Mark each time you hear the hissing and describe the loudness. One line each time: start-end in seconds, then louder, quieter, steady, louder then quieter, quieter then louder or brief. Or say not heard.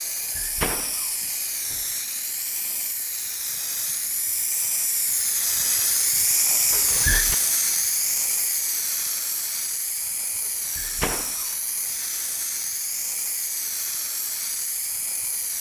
0.0-15.5 louder then quieter.